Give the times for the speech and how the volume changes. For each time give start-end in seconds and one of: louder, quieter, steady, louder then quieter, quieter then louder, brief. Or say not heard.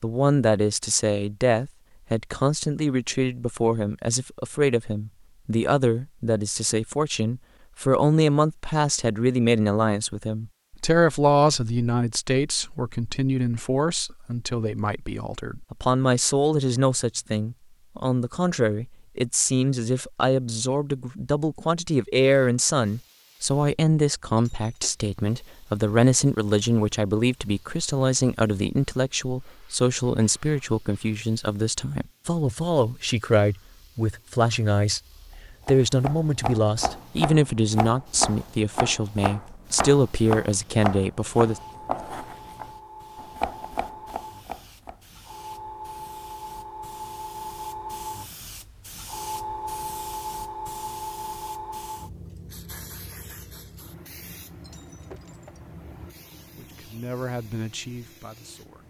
0.0-41.6 steady
56.5-58.8 brief.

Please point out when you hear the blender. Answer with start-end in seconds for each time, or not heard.
not heard.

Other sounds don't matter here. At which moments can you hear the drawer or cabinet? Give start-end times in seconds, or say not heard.
not heard.